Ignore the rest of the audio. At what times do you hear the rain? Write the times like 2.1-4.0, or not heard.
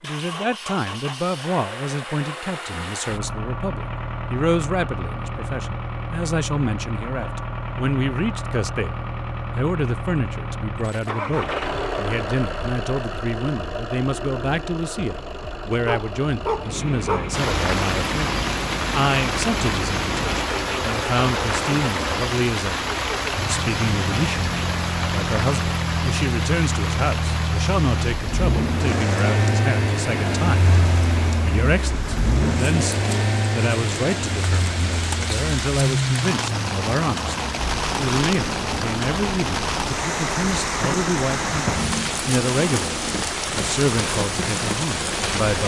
17.3-45.6.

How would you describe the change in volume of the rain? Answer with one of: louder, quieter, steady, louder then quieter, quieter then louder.
quieter then louder.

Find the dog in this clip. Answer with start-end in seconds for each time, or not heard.
15.8-17.3.